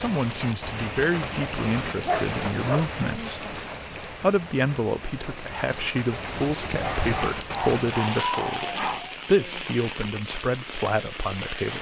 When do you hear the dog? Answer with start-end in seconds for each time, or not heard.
2.0-2.9, 6.8-9.2.